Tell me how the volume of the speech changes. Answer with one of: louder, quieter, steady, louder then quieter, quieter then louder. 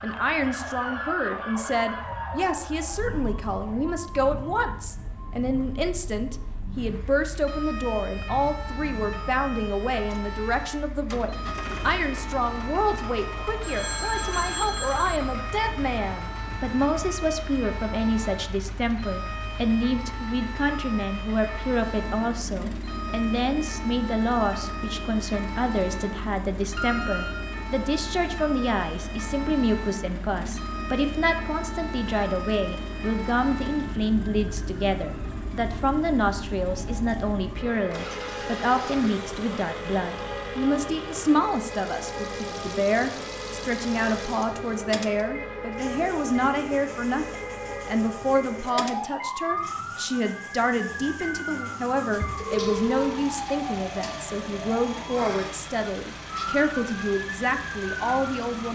steady.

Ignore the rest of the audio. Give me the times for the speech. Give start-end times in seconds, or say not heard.
0.0-58.7.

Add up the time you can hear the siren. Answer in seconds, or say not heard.
59 s.